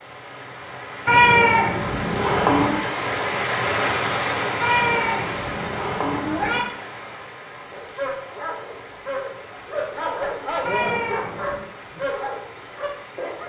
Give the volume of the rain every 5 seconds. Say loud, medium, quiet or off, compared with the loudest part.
loud, medium, quiet.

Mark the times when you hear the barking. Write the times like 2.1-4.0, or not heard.
7.7-13.4.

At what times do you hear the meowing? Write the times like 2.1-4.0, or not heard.
1.1-2.8, 4.6-6.6, 10.7-11.7.